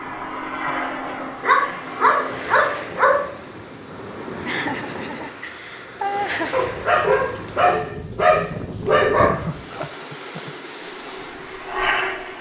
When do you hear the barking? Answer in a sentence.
You can hear the barking from 1.2 to 3.2 s and from 6.5 to 9.3 s.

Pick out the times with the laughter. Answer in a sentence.
The laughter can be heard from 0.7 to 1.3 s, from 4.4 to 6.6 s and from 9.2 to 10.5 s.